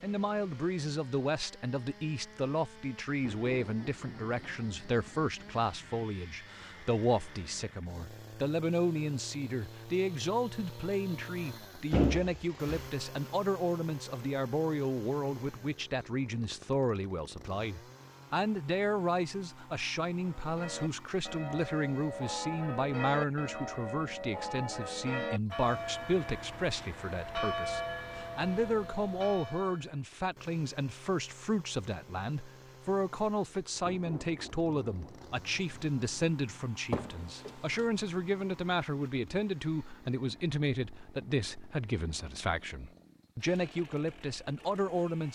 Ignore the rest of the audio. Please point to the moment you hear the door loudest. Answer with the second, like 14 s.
12 s.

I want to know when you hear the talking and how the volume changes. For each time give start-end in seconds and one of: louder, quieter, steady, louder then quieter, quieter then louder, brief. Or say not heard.
0.0-45.2 steady.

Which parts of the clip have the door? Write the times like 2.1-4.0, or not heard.
11.9-12.9, 36.9-37.9.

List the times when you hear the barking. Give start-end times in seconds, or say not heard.
not heard.